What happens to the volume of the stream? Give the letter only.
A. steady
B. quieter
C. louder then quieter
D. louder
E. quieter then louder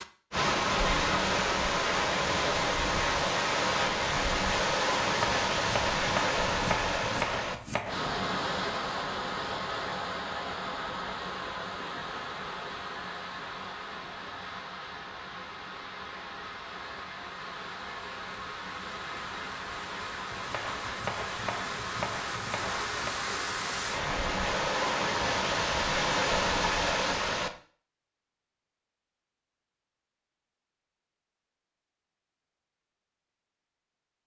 E.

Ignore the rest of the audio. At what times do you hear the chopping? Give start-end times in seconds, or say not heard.
5.0-8.0, 20.3-23.1.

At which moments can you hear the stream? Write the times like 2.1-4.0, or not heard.
0.0-27.5.